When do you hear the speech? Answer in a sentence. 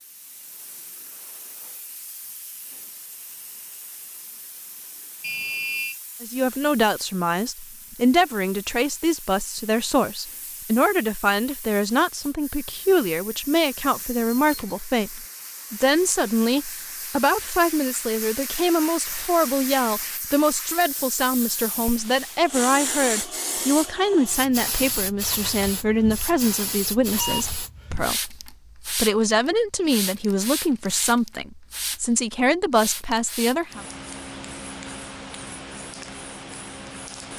The speech can be heard from 6.2 to 33.8 s.